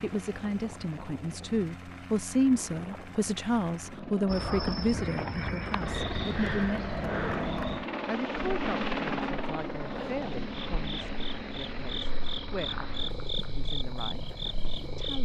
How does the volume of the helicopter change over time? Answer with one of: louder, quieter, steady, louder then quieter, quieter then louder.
louder then quieter.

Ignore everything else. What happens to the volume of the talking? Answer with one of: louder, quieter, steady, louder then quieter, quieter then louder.
quieter.